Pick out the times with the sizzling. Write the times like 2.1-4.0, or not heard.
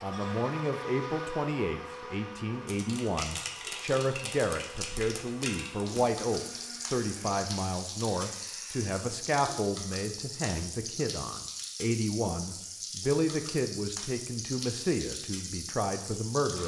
2.6-16.6.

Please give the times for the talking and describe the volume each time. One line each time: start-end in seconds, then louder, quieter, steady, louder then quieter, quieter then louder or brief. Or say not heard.
0.0-16.6 steady.